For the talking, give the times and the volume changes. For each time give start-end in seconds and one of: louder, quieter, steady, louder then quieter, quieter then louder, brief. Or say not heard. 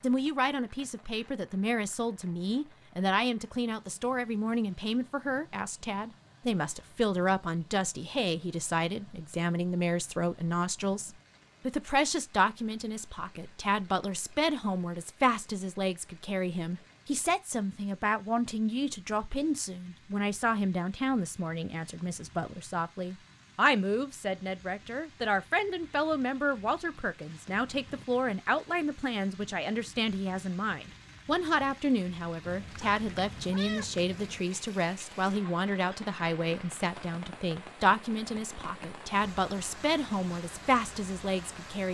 0.0-41.8 steady.